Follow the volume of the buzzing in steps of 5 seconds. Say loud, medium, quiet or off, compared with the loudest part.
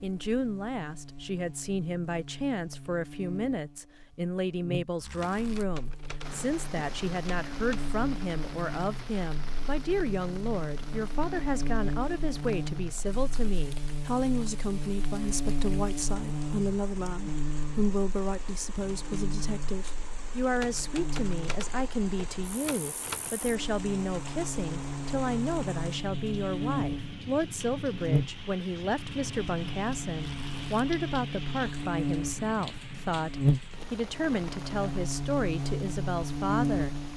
quiet, medium, medium, medium, medium, loud, loud, loud.